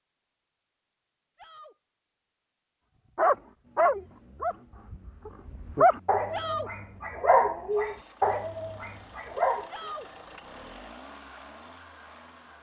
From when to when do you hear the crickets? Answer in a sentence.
The crickets can't be heard in this clip.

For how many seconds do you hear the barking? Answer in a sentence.
You can hear the barking for 7 seconds altogether.